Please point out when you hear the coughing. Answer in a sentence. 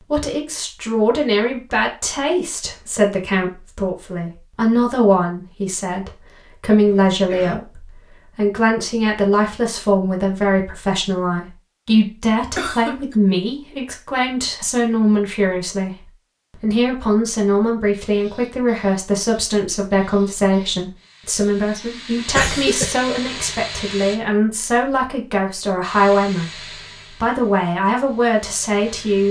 You can hear the coughing from 6.8 to 7.6 s, from 12.6 to 13.2 s and from 22.3 to 22.9 s.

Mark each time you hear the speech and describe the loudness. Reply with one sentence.
The speech can be heard from 0.1 to 29.2 s, at a steady volume.